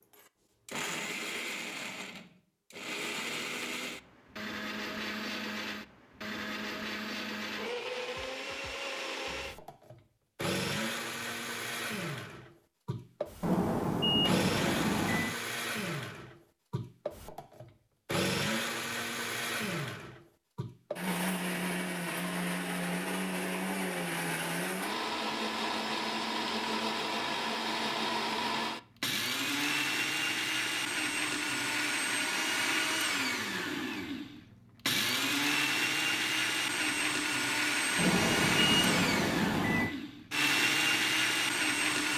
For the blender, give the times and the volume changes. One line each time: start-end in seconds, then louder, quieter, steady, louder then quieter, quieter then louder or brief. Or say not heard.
0.1-42.1 louder.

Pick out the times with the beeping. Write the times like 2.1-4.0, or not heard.
13.4-15.3, 38.0-40.0.